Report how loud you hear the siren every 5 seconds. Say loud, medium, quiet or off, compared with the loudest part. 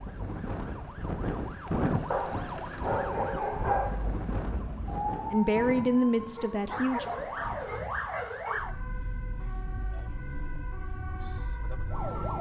medium, loud, loud.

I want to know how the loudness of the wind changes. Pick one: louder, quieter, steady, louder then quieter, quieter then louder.
quieter.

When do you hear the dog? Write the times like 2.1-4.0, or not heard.
2.1-4.0, 6.3-8.7.